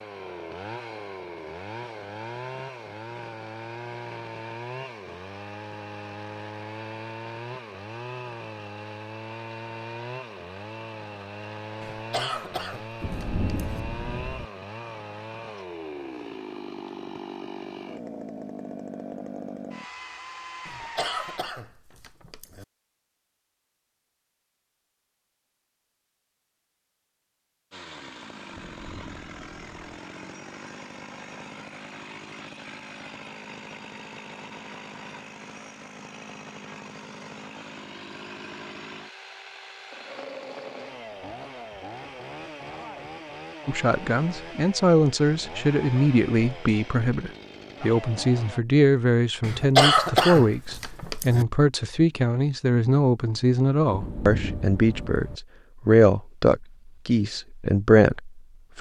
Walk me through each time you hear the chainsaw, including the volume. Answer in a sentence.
You can hear the chainsaw from 0.0 to 21.4 s, at a steady volume; and from 27.7 to 48.6 s, at a steady volume.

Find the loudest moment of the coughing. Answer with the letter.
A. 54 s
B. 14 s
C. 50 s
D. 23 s
C.